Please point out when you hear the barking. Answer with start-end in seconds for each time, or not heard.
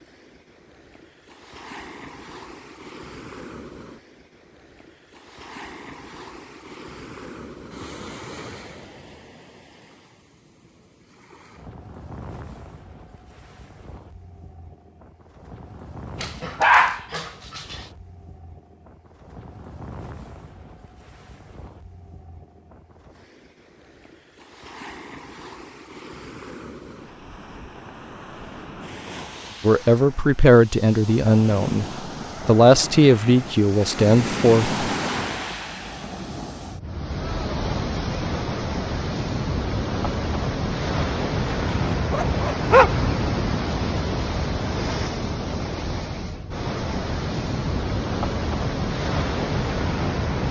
16.2-17.8, 41.7-43.0.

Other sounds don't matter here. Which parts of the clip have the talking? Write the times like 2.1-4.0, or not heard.
29.6-31.9, 32.5-34.8.